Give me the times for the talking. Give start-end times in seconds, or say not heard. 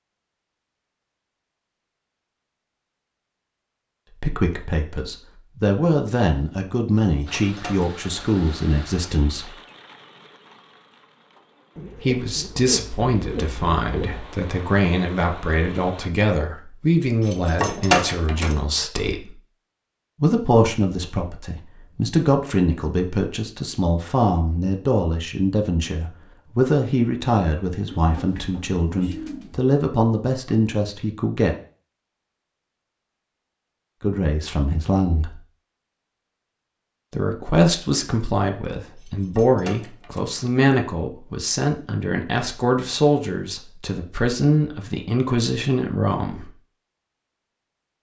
4.2-9.5, 11.9-19.4, 20.2-31.6, 34.0-35.4, 37.1-46.5.